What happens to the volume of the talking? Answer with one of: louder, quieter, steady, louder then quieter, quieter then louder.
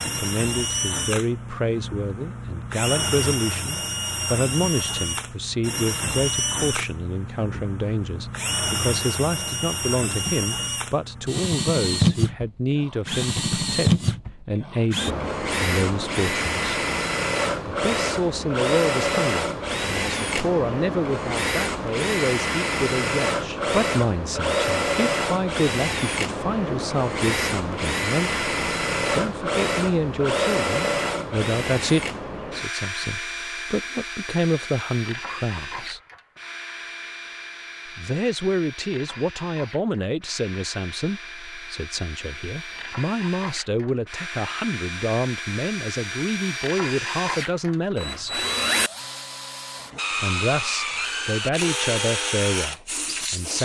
steady.